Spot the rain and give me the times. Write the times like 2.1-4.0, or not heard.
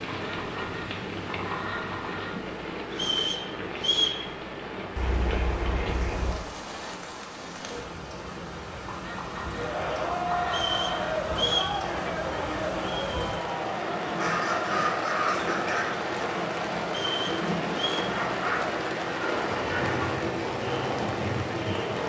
0.0-22.0.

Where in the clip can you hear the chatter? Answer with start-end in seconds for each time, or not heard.
9.5-22.0.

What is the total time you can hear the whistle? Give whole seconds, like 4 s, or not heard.
4 s.